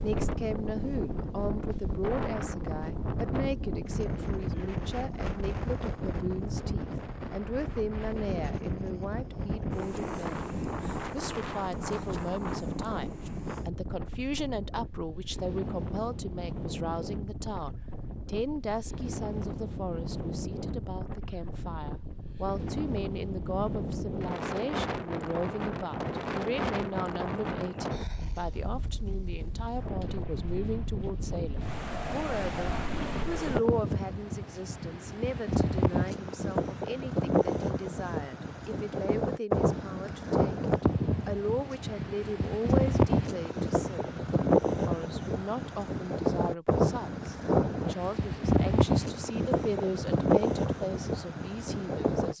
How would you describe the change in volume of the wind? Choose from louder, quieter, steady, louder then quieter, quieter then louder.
louder.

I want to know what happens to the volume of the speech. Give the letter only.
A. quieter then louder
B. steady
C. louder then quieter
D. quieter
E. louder
B.